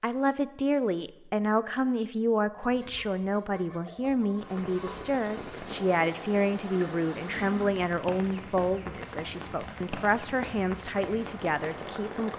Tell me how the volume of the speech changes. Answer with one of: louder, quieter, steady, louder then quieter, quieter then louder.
steady.